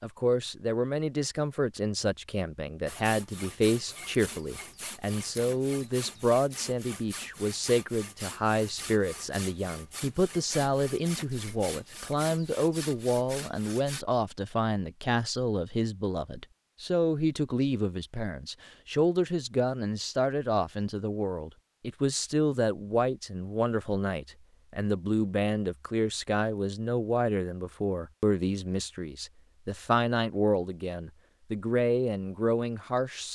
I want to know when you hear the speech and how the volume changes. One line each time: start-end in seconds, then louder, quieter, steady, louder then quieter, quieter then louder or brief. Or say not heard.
0.0-33.3 steady.